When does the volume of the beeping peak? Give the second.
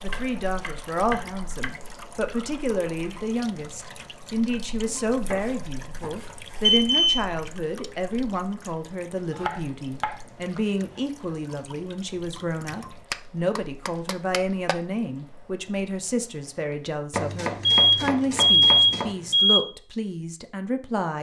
19 s.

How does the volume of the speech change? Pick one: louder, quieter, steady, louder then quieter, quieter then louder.
steady.